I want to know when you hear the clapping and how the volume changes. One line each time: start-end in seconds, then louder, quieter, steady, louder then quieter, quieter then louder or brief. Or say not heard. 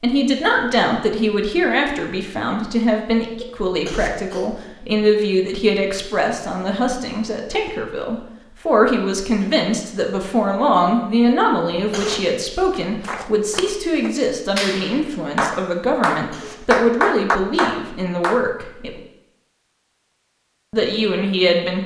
12.8-18.5 louder.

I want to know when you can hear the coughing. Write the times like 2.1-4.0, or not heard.
3.6-4.5, 11.7-12.2, 16.1-16.8.